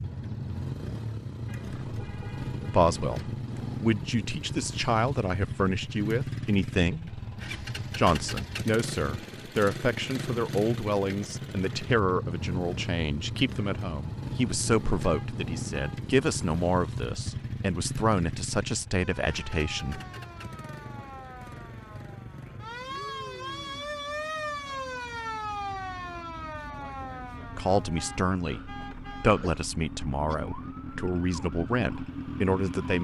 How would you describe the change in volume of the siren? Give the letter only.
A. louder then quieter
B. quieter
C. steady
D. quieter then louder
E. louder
A.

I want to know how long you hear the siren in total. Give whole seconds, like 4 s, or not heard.
14 s.